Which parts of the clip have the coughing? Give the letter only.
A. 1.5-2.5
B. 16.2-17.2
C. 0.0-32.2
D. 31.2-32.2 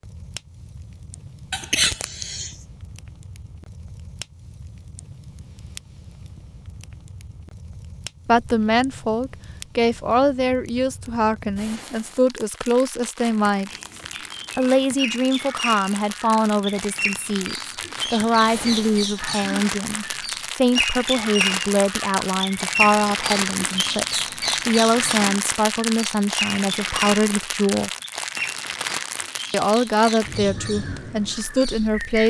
A.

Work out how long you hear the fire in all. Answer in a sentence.
You can hear the fire for 32 seconds altogether.